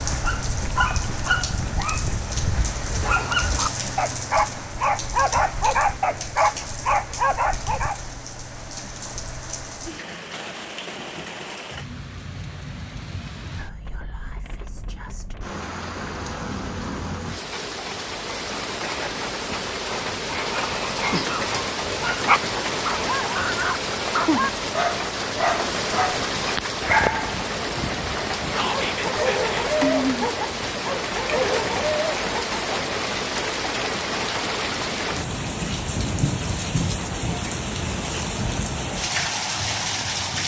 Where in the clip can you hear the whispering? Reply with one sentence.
The whispering can be heard from 13.4 to 15.3 s and from 28.6 to 29.6 s.